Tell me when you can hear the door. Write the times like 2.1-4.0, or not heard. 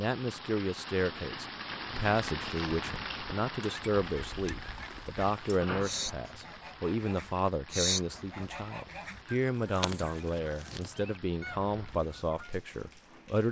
5.6-6.5.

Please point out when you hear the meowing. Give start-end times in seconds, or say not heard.
not heard.